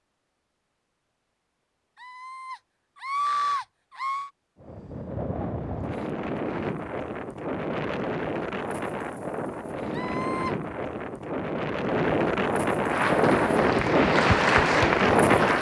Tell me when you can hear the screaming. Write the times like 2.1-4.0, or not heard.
2.0-4.3, 9.9-10.6.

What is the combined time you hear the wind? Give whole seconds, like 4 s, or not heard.
11 s.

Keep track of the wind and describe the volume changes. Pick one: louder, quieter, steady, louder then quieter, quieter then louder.
louder.